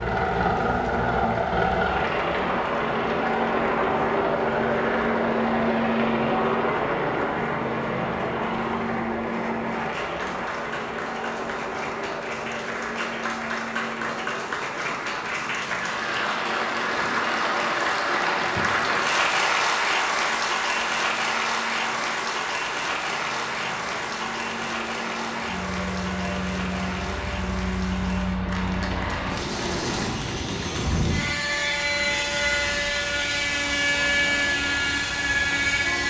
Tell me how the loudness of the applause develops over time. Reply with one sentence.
The loudness of the applause goes up, then down.